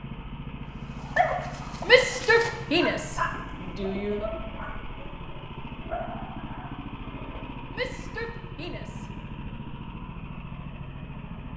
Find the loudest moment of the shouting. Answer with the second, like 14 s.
2 s.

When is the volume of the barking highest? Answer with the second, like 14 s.
1 s.